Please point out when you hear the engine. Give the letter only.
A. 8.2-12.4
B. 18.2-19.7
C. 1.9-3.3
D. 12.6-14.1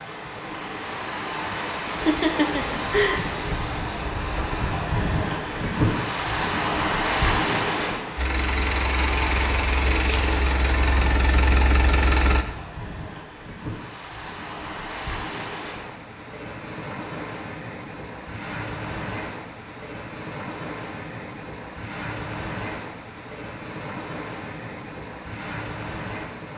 A.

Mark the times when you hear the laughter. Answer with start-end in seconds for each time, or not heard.
1.9-3.3.